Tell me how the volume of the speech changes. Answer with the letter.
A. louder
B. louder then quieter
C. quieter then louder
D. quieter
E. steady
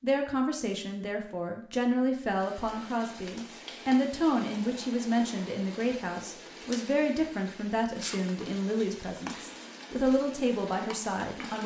E.